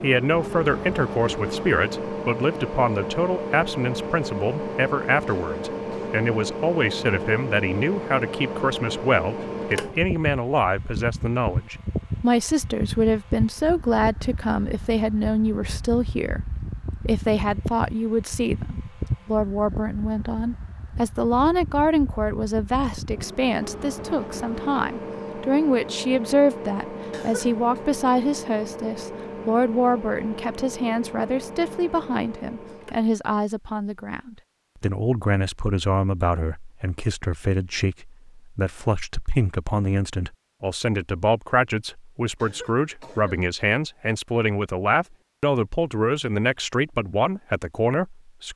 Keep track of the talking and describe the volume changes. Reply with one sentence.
The volume of the talking stays about the same.